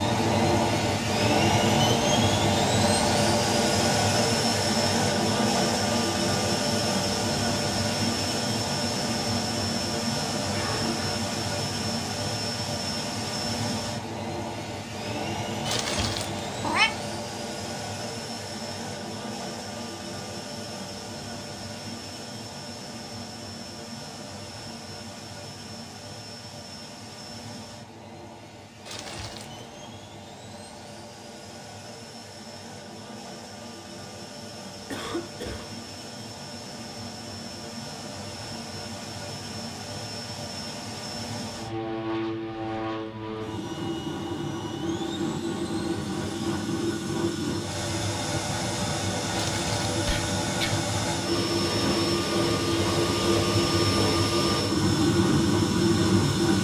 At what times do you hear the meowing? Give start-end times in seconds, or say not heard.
15.7-16.9, 28.9-29.7, 49.3-49.8.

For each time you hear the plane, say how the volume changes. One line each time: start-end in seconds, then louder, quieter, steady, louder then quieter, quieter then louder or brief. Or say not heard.
0.0-56.5 quieter then louder.